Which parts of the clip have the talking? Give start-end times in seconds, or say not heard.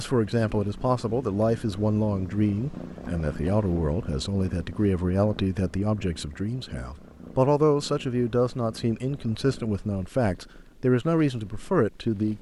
0.0-12.3.